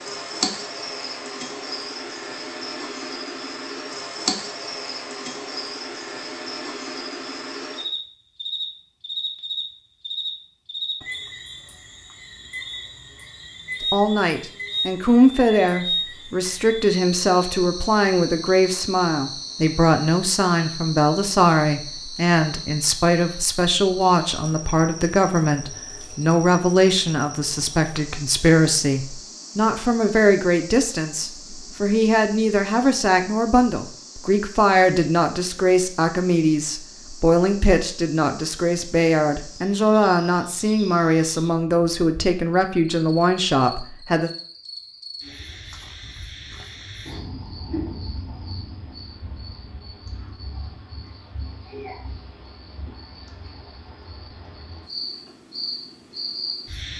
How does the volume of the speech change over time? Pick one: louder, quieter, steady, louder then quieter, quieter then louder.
steady.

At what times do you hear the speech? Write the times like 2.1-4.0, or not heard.
13.8-44.3.